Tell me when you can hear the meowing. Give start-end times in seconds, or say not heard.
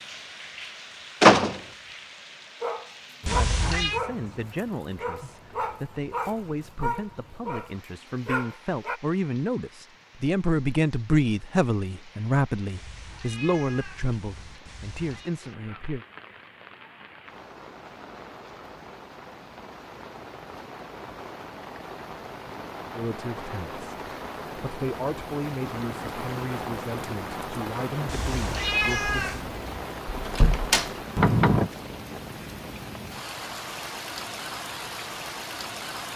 3.2-4.0, 12.7-15.3, 28.1-29.4.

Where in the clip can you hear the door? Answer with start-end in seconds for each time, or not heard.
1.2-1.6, 29.4-31.7.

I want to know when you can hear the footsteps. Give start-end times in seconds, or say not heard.
not heard.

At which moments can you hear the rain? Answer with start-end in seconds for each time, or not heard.
0.0-36.1.